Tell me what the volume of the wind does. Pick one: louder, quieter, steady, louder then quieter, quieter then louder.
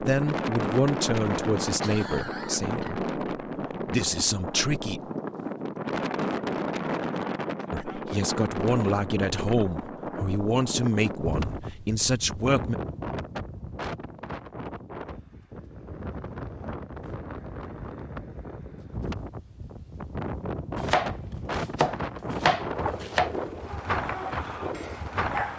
quieter then louder.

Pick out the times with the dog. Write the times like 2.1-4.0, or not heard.
23.6-25.5.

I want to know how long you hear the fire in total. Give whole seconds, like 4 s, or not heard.
not heard.